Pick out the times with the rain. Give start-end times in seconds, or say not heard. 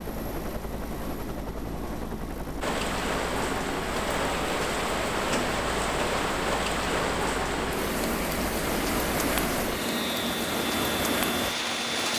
2.6-12.1.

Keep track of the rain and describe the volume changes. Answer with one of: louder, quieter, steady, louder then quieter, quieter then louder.
steady.